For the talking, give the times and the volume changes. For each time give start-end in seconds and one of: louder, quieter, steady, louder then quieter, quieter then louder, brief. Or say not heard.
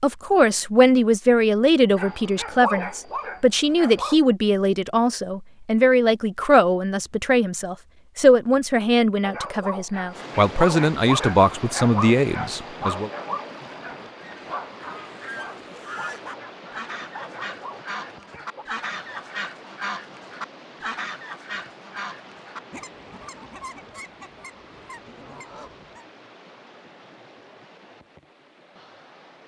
0.0-13.1 steady.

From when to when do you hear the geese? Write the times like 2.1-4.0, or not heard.
14.2-26.1.